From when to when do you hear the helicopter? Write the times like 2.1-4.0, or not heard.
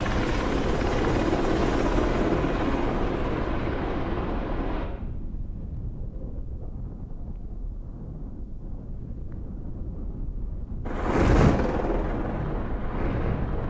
0.0-4.8, 10.8-13.6.